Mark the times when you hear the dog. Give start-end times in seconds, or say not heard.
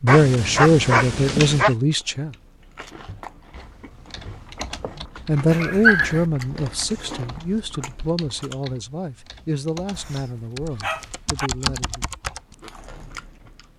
0.1-1.8, 5.5-6.2, 9.9-11.5.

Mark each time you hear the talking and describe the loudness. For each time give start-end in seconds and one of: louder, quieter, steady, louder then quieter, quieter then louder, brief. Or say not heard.
0.0-2.4 brief
5.0-12.2 quieter.